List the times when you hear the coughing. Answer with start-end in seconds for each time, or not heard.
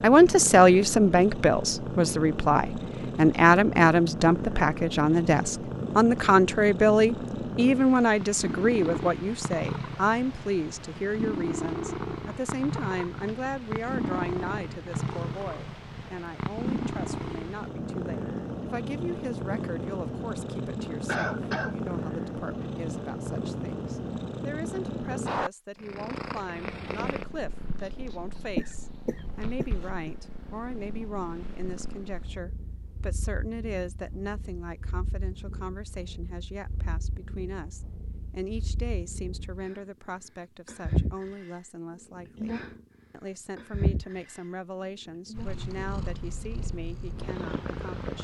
21.1-21.8, 28.6-30.1.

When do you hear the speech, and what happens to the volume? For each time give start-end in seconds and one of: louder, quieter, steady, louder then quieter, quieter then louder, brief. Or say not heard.
0.0-48.1 quieter.